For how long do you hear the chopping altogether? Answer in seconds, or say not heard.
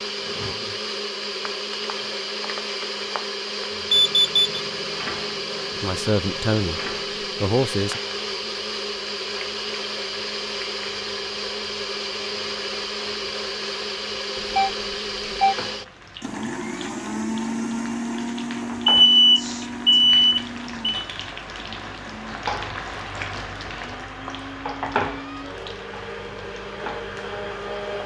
not heard.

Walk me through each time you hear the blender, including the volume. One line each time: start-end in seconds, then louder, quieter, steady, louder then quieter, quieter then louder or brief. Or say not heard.
0.0-28.0 quieter.